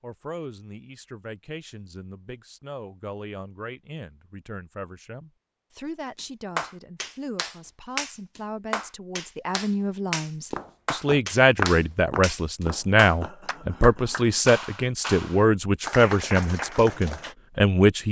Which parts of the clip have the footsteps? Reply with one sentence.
You can hear the footsteps from 10.5 to 13.3 s.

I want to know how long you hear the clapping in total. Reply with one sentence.
You can hear the clapping for 11 seconds altogether.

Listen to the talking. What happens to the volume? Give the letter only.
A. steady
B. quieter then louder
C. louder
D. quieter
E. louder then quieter
C.